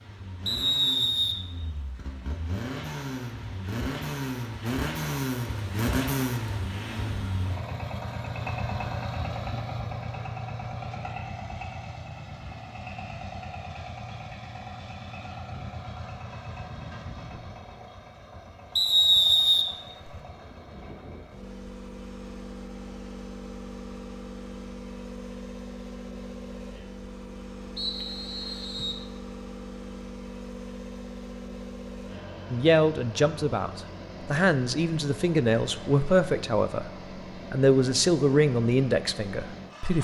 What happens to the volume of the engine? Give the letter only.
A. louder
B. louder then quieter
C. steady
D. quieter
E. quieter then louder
D.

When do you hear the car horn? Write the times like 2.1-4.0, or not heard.
not heard.